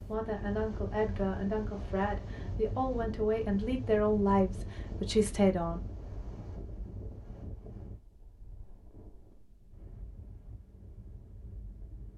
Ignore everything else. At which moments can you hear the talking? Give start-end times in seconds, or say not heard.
0.0-5.8.